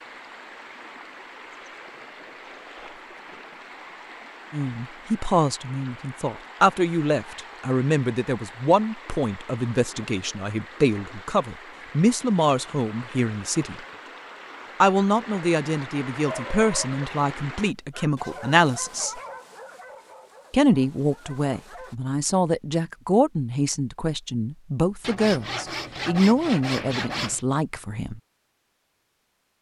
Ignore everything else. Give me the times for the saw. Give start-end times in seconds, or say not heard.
25.0-27.4.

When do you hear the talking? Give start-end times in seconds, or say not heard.
4.5-13.8, 14.8-19.2, 20.5-28.2.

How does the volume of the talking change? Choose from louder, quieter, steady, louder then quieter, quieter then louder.
steady.